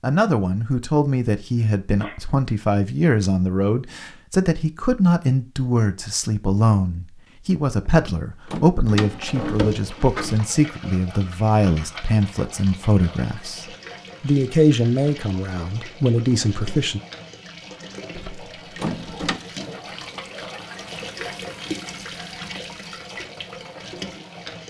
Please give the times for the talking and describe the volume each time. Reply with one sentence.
The talking can be heard from 0.0 to 17.0 s, at a steady volume.